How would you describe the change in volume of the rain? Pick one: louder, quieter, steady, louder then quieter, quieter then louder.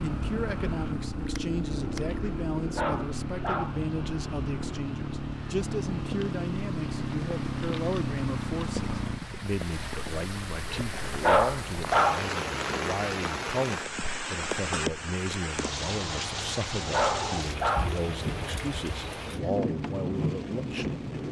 louder.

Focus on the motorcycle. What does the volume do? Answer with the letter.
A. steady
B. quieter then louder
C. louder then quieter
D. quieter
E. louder
A.